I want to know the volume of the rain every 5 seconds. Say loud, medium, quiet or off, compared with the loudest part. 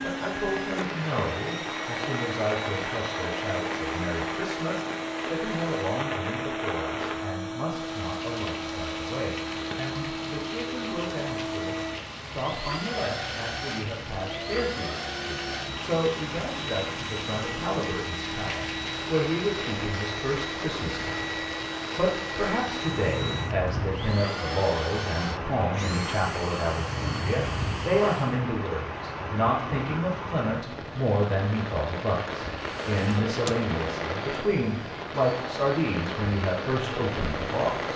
loud, loud, medium, loud, loud, loud, loud, loud.